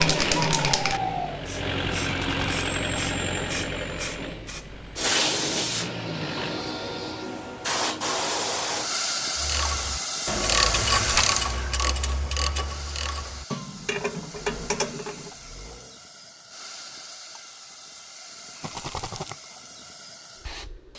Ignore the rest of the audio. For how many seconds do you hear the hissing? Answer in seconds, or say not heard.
21 s.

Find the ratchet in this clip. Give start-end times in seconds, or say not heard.
9.3-15.3.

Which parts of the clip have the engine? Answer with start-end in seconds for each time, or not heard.
0.0-6.6, 14.3-16.0.